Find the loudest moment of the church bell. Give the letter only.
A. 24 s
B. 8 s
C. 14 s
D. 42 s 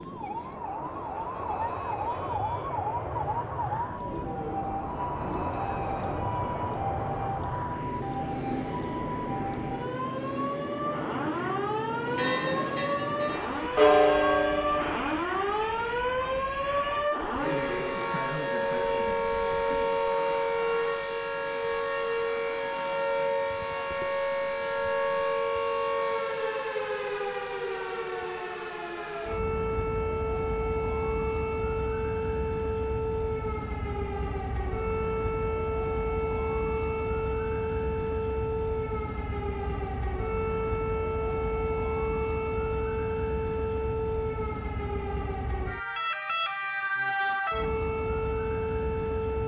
C.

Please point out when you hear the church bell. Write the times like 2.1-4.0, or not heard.
12.0-15.1.